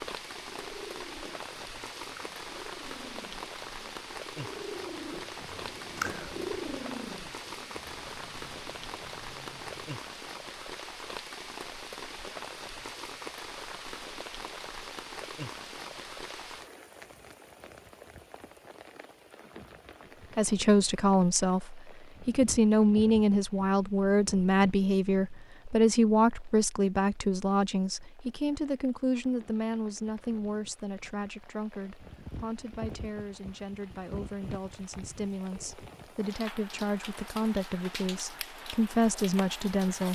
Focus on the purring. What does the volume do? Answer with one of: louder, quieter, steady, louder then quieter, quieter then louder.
louder then quieter.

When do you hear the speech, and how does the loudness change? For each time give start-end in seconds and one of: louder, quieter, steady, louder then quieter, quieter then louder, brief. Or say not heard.
20.4-40.1 quieter then louder.